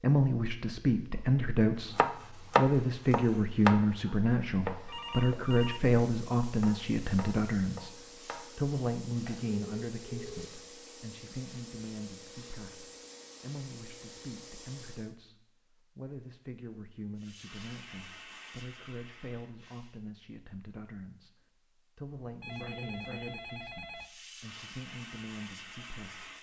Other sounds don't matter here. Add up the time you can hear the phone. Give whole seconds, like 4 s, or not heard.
4 s.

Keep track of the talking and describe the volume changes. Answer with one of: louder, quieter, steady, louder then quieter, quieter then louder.
quieter.